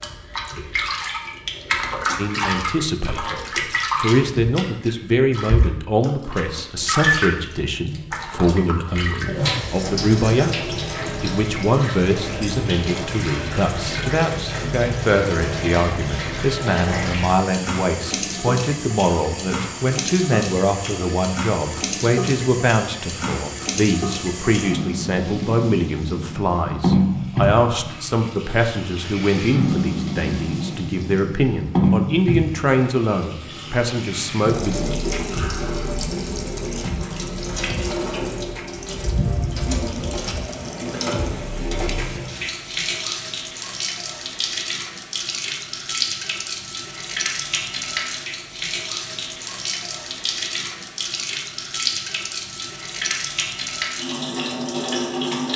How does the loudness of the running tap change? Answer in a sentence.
The loudness of the running tap stays about the same.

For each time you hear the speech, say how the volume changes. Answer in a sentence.
The speech can be heard briefly from 2.1 to 3.4 s; and from 4.0 to 34.8 s, at a steady volume.